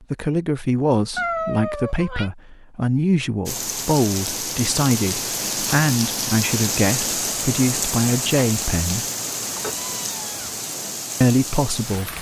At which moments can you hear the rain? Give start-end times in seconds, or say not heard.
3.5-12.1.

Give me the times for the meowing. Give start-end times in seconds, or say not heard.
1.1-2.3, 9.4-10.6.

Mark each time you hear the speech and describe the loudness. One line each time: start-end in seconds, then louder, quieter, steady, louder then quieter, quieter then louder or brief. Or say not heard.
0.1-9.1 steady
11.2-12.1 brief.